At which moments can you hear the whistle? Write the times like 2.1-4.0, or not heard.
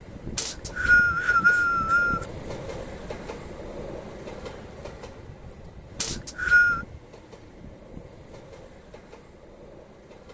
0.3-2.2, 6.0-6.8.